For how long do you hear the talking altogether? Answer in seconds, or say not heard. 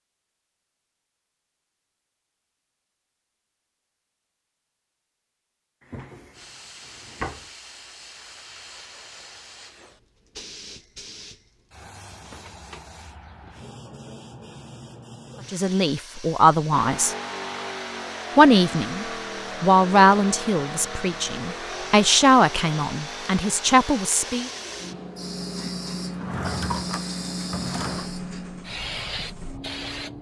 8 s.